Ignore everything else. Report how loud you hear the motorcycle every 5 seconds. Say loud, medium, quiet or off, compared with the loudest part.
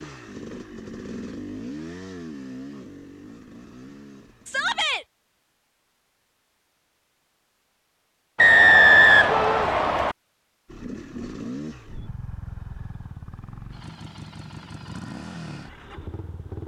loud, off, loud, loud.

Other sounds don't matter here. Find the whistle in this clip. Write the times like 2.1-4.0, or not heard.
8.3-10.2.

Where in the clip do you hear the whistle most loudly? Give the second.
9 s.